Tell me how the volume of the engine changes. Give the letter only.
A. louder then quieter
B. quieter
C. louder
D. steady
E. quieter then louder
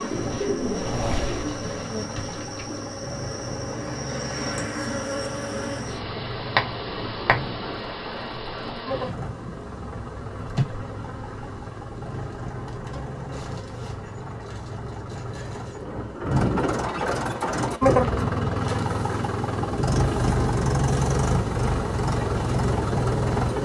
C.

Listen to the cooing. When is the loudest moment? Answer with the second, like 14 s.
1 s.